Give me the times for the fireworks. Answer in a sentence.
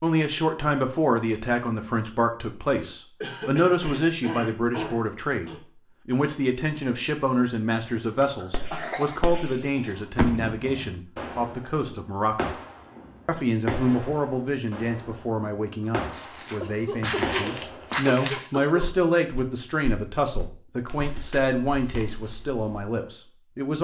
You can hear the fireworks from 8.0 to 18.0 s.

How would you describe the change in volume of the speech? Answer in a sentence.
The loudness of the speech stays about the same.